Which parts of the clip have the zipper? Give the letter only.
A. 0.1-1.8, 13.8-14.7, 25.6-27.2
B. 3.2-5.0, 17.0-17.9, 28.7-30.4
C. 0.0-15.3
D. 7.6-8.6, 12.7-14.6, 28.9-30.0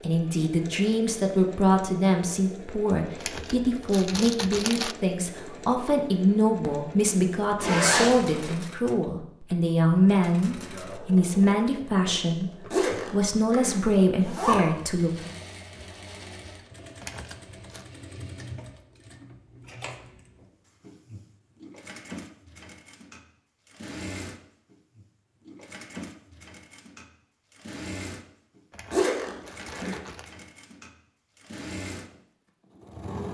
D.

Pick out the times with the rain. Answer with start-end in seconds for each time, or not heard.
not heard.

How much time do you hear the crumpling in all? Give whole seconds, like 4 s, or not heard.
4 s.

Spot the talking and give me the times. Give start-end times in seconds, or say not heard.
0.0-15.3.